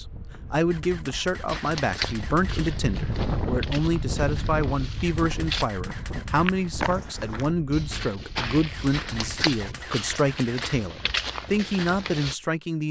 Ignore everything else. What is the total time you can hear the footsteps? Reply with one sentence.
You can hear the footsteps for 11 seconds altogether.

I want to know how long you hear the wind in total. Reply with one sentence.
You can hear the wind for 10 seconds altogether.